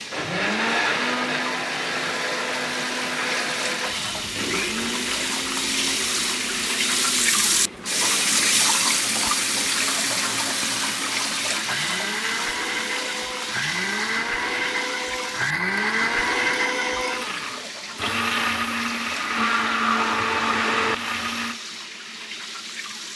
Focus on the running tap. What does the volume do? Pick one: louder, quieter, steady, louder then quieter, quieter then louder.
louder then quieter.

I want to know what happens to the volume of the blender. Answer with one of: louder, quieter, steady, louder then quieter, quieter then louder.
quieter then louder.